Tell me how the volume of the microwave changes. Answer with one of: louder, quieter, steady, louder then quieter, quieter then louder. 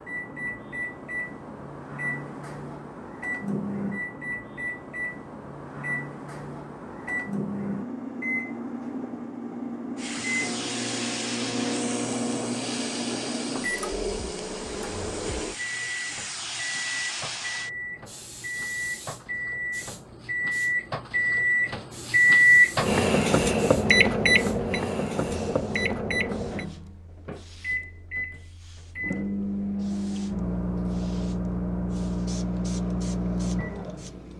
louder then quieter.